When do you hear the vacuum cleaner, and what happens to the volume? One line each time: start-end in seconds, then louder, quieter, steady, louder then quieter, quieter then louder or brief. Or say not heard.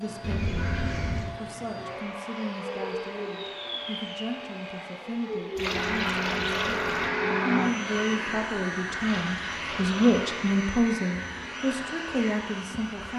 0.0-13.1 louder then quieter.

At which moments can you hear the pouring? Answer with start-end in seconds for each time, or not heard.
0.2-1.3, 5.5-7.1, 9.0-10.3.